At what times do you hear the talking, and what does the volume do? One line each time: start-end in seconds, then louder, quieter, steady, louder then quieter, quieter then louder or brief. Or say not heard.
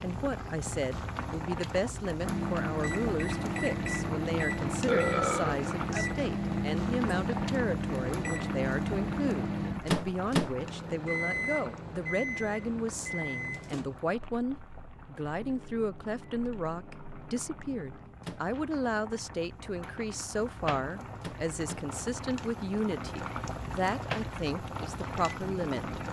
0.0-26.0 steady.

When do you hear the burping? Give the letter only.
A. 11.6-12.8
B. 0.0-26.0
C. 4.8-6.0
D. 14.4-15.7
C.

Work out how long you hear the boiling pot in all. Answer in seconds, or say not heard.
26 s.